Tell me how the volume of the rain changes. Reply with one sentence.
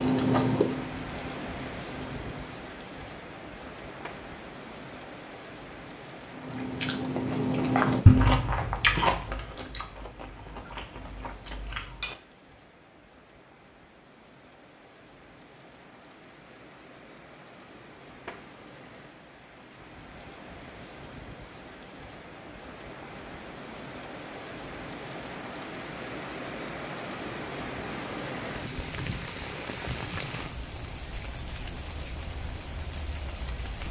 The loudness of the rain goes down, then up.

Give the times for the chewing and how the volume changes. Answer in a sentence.
The chewing can be heard briefly from 0.0 to 2.6 s; and from 6.3 to 12.2 s, getting louder then quieter.